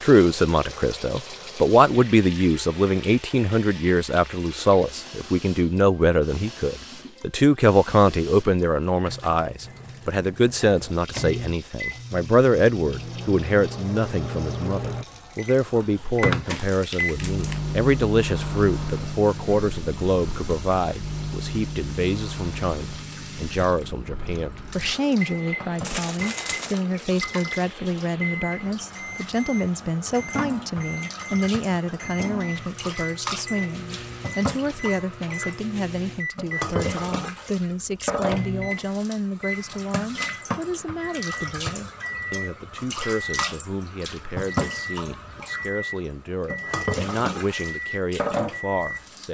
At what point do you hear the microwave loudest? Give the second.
17 s.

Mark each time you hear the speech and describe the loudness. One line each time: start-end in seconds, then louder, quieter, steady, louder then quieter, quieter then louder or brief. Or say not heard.
0.0-49.3 quieter.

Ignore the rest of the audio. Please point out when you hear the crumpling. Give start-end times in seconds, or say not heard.
16.4-17.6, 25.8-26.8.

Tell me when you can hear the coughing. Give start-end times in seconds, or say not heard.
not heard.